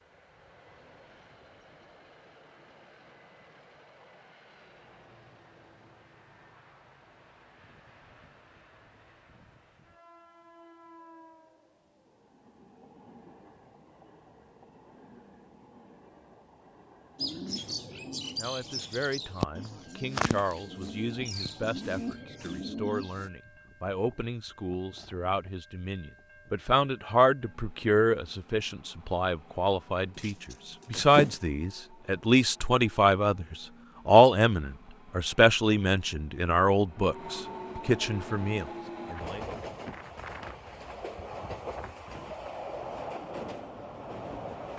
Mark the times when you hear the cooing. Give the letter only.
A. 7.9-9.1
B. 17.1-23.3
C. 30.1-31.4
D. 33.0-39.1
B.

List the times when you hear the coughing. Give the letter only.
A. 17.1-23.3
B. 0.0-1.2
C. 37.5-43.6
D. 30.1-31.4
D.